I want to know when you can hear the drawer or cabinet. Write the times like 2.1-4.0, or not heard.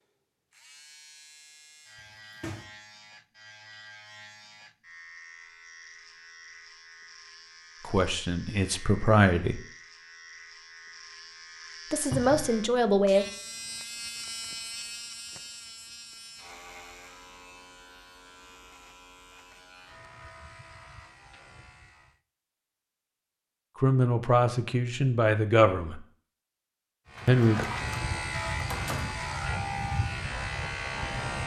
1.9-2.6, 12.1-12.5, 27.1-29.1.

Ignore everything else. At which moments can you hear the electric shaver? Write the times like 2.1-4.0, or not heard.
0.0-22.2, 27.1-31.4.